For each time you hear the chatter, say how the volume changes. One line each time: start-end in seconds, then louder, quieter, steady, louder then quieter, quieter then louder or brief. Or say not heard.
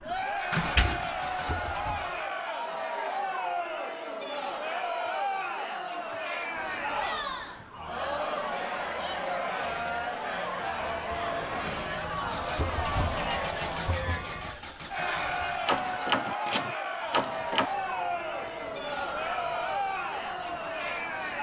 0.0-21.3 steady.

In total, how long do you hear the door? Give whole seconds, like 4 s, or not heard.
3 s.